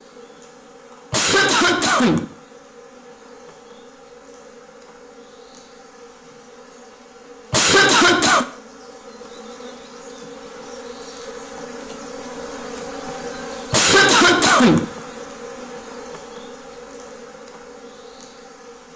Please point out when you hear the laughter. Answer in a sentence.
The laughter can be heard from 1.1 to 2.2 s, from 7.5 to 8.4 s and from 13.7 to 14.8 s.